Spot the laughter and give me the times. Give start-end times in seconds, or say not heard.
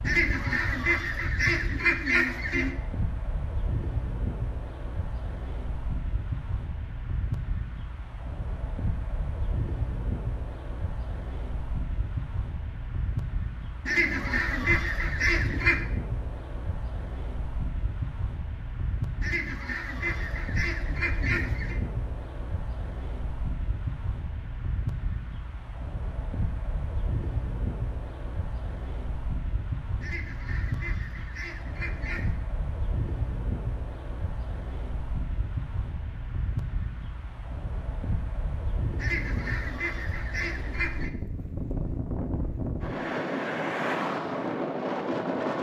not heard.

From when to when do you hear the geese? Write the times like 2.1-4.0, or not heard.
0.0-2.8, 13.8-15.8, 19.2-21.8, 30.0-32.4, 39.0-41.1.